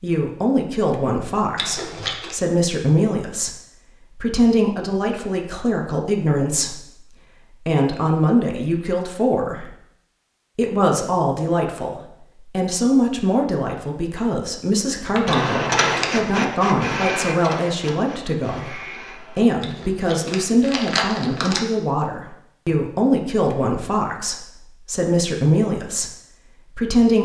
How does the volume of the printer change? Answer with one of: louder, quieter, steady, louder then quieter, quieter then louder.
quieter.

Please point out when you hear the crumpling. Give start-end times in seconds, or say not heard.
1.6-2.4, 15.3-16.3, 19.6-21.6.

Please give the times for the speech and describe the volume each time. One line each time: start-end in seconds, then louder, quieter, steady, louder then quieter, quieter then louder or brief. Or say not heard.
0.0-7.0 steady
7.7-9.7 brief
10.6-27.2 steady.